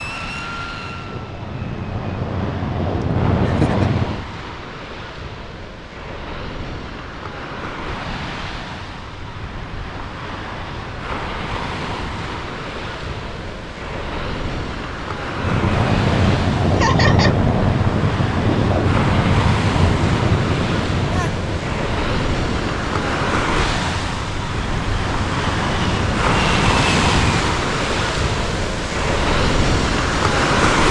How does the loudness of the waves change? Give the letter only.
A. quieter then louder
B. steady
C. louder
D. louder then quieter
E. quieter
C.